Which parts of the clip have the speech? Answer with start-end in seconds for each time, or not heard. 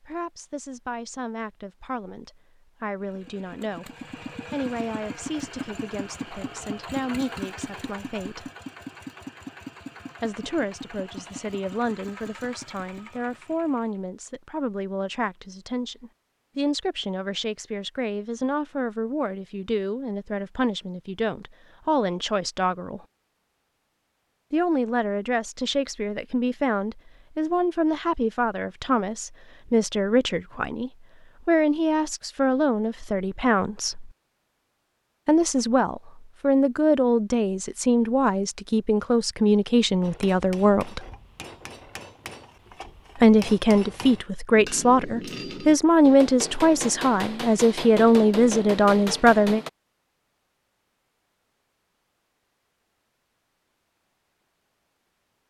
0.0-3.9, 4.5-8.5, 10.2-23.1, 24.5-34.1, 35.2-41.0, 43.1-49.6.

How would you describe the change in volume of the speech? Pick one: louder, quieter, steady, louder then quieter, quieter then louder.
louder.